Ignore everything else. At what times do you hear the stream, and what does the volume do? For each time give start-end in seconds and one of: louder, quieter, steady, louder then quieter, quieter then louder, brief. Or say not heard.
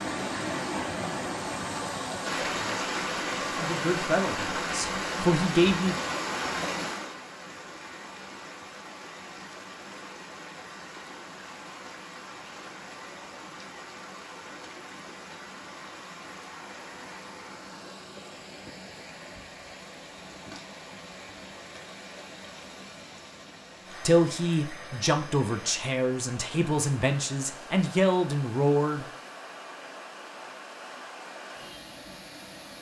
0.0-32.7 quieter.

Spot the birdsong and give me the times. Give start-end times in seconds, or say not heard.
not heard.